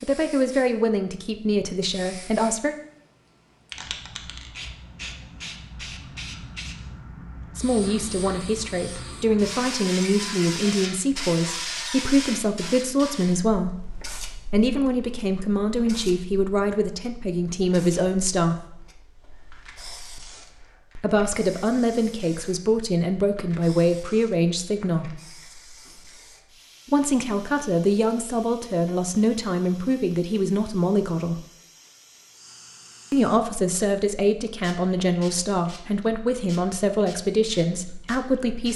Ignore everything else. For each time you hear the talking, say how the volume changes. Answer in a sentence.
You can hear the talking briefly from 0.0 to 2.8 s; from 7.5 to 18.6 s, at a steady volume; from 20.9 to 25.2 s, at a steady volume; from 26.9 to 31.4 s, at a steady volume; and from 33.1 to 38.7 s, at a steady volume.